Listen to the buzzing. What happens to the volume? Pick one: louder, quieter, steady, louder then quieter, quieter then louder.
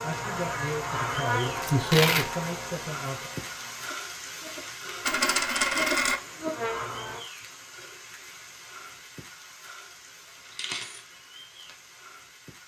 quieter then louder.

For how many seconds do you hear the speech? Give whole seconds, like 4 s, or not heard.
3 s.